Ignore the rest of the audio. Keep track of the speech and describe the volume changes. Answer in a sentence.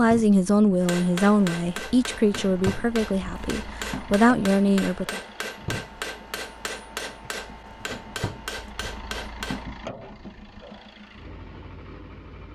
The loudness of the speech goes down, then up.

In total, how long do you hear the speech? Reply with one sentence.
The speech can be heard for 5 seconds in total.